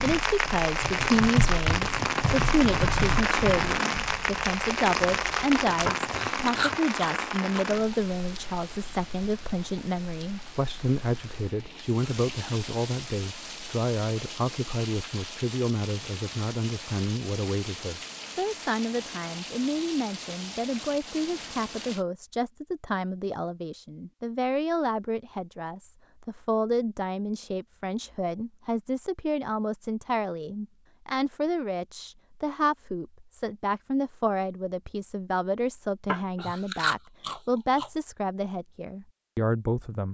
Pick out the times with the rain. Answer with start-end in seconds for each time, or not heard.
0.0-22.1.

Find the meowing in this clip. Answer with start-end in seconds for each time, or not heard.
not heard.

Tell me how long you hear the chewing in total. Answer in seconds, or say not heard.
4 s.